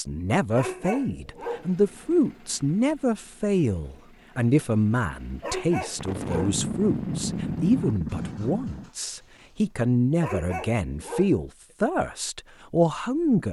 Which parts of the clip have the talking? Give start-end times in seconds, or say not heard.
0.0-13.4.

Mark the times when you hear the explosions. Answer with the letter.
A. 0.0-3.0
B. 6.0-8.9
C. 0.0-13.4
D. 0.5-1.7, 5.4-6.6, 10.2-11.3
B.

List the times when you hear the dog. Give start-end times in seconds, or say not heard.
0.5-1.7, 5.4-6.6, 10.2-11.3.